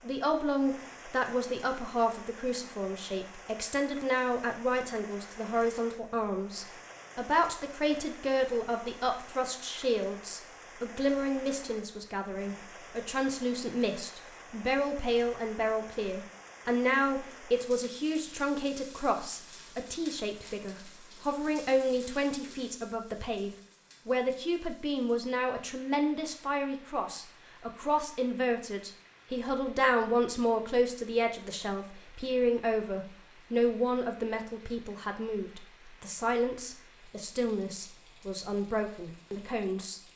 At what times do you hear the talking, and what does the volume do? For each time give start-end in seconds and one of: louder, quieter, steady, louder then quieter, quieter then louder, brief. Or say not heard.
0.0-40.0 steady.